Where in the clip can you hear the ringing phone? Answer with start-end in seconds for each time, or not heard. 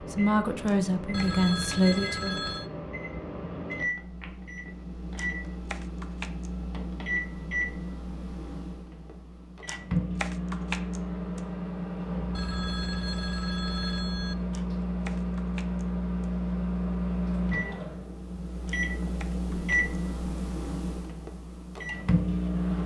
1.1-2.7, 12.3-14.3.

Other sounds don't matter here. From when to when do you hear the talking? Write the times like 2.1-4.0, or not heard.
0.0-2.4.